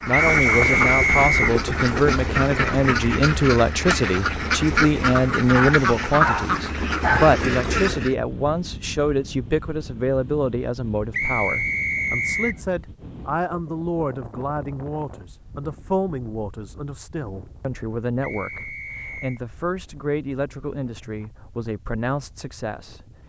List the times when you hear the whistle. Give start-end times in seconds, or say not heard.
0.1-1.6, 11.1-12.6, 18.2-19.4.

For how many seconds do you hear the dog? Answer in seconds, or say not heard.
2 s.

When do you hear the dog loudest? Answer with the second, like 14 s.
7 s.